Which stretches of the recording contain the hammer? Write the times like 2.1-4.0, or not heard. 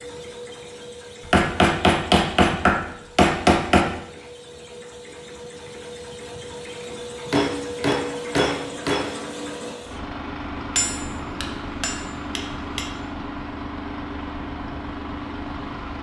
1.2-3.9, 7.3-9.1, 10.7-12.9.